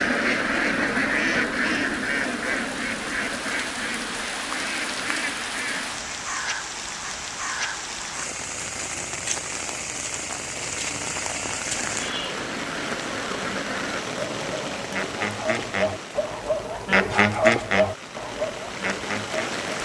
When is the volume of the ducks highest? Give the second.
17 s.